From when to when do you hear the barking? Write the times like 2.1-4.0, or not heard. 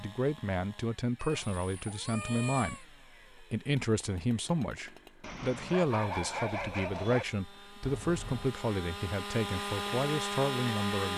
5.2-7.2.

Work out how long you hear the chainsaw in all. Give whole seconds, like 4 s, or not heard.
11 s.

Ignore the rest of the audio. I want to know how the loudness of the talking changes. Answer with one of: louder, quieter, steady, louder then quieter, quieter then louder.
steady.